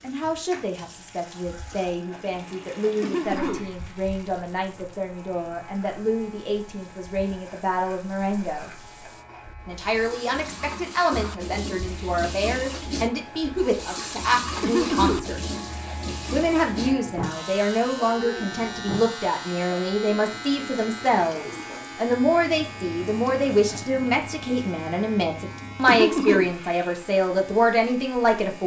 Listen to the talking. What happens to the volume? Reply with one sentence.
The loudness of the talking goes up.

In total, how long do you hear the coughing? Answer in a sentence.
The coughing can be heard for 2 seconds in total.